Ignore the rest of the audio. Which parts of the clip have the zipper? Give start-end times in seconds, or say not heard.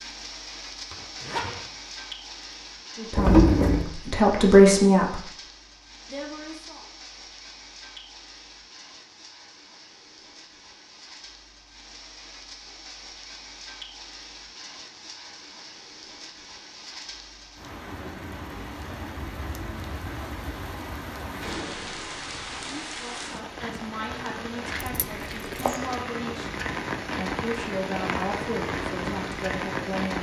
0.8-1.6.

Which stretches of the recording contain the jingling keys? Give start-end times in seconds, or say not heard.
3.1-3.9, 24.8-25.8.